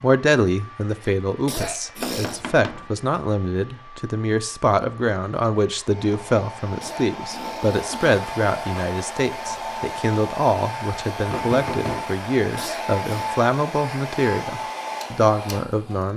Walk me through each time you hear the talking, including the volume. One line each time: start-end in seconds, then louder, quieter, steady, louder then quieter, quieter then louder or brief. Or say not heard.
0.0-16.1 steady.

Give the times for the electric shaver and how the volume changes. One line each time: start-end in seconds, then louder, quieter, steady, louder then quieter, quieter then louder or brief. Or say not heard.
not heard.